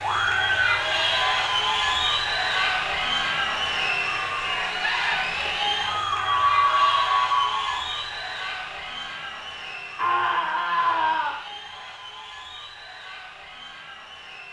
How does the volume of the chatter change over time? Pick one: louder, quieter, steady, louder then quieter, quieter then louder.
quieter.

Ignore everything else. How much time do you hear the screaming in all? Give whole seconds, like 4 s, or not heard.
4 s.